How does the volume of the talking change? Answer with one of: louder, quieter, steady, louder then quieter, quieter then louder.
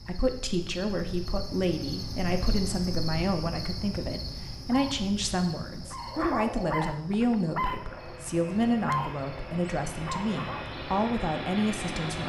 steady.